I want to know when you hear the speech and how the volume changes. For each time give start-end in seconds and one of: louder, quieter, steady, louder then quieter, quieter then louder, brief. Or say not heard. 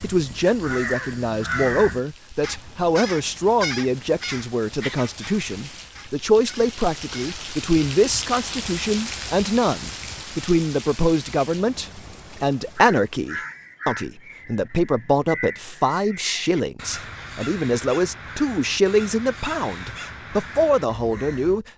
0.0-21.6 steady.